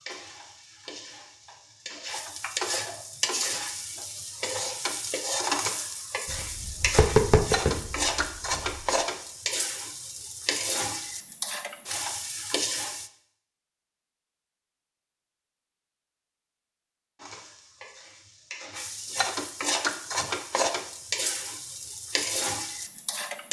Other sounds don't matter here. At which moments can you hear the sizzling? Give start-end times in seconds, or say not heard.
0.0-13.1, 17.1-23.4.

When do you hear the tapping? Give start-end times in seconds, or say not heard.
6.2-8.8.